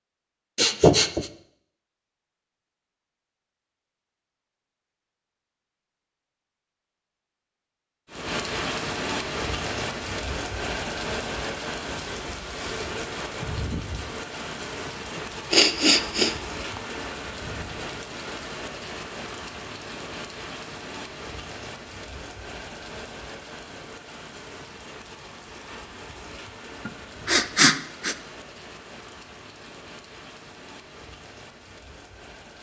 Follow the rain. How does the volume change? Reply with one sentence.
The volume of the rain goes down.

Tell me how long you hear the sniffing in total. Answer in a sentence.
You can hear the sniffing for 4 seconds altogether.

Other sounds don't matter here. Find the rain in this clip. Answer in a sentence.
You can hear the rain from 8.1 to 32.5 s.